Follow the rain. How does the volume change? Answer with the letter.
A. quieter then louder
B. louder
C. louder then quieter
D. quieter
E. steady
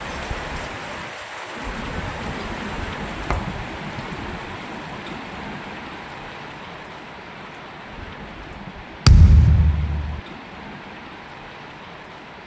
D.